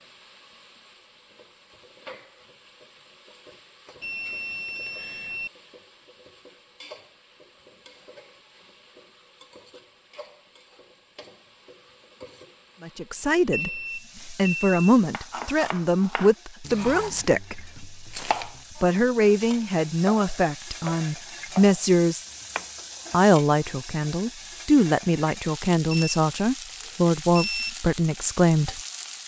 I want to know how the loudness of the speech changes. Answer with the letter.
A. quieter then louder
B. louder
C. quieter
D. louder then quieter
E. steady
E.